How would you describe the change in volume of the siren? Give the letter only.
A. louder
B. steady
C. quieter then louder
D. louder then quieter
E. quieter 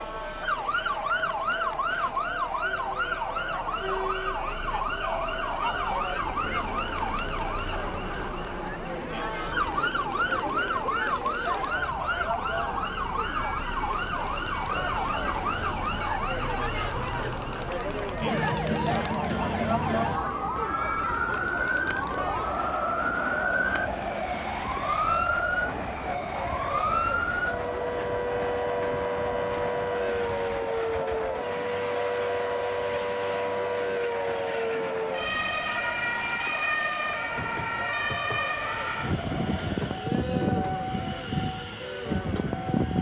B.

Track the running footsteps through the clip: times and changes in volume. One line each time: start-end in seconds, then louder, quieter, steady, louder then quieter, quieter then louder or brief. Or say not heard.
not heard.